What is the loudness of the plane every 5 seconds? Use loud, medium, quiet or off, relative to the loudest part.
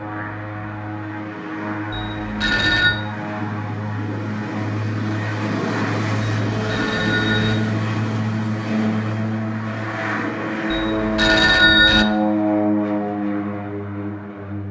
medium, loud, loud.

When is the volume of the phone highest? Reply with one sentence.
The volume of the phone peaks at 12 seconds.